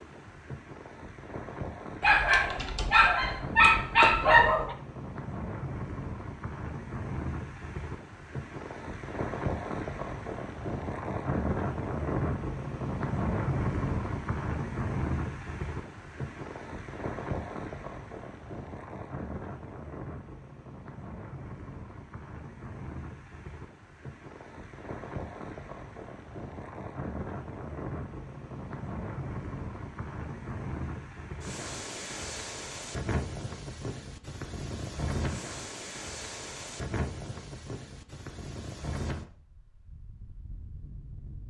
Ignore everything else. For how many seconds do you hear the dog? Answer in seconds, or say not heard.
3 s.